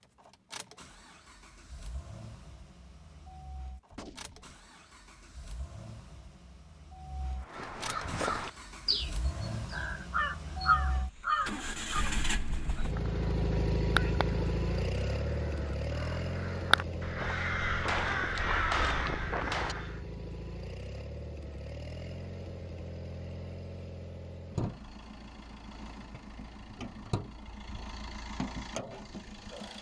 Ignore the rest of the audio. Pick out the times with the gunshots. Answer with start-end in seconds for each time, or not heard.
3.9-4.5, 17.9-19.8.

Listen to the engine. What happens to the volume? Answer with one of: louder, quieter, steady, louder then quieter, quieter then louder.
louder then quieter.